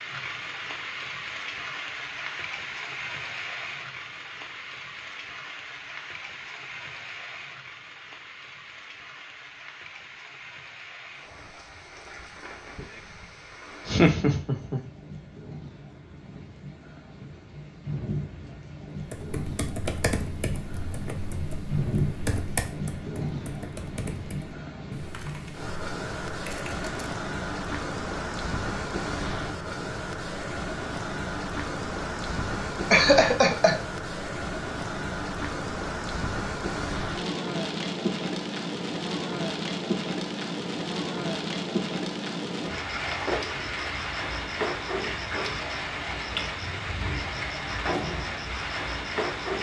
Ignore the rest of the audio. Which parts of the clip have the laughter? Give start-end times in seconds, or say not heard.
13.8-14.8, 32.9-33.8.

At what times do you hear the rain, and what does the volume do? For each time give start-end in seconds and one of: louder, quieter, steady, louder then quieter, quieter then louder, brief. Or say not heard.
0.0-49.5 louder.